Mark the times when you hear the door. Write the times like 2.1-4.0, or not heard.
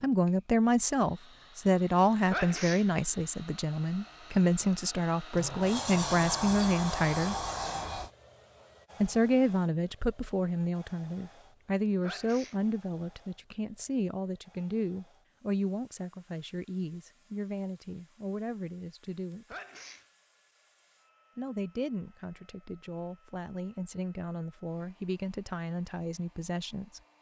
5.3-8.1.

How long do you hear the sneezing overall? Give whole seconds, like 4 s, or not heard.
2 s.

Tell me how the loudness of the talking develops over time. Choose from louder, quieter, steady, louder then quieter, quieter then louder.
quieter.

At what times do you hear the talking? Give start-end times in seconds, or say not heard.
0.0-7.3, 9.0-19.6, 21.4-27.0.